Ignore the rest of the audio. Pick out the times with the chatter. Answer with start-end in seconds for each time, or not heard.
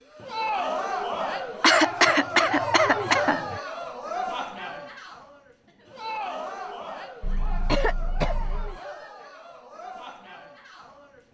0.1-11.2.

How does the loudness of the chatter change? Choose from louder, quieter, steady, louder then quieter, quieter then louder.
quieter.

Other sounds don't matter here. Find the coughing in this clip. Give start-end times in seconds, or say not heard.
1.6-3.6, 7.2-8.8.